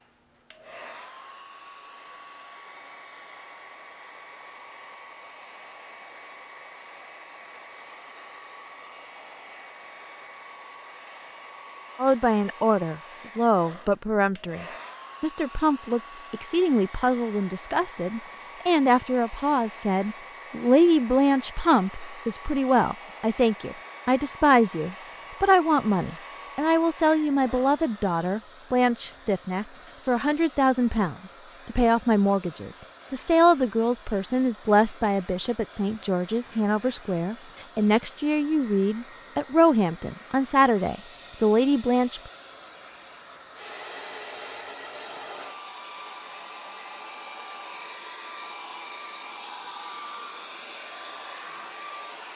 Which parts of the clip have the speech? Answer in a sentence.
You can hear the speech from 11.9 to 42.3 s.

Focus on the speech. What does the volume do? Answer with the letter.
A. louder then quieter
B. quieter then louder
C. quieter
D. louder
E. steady
E.